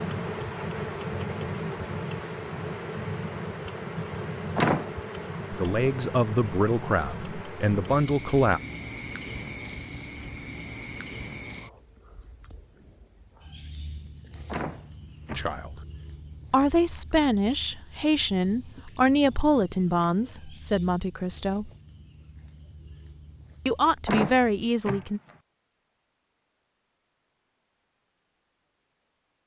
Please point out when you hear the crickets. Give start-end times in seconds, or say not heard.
0.0-24.8.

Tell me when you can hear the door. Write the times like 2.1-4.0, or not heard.
4.5-5.0, 14.4-15.5, 24.1-25.4.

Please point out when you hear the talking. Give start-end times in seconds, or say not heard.
5.5-8.6, 15.3-15.8, 16.5-21.7, 23.6-25.2.